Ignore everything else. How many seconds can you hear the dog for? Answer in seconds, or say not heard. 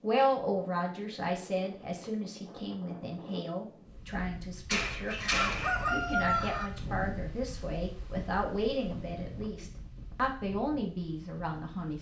not heard.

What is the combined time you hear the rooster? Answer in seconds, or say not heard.
2 s.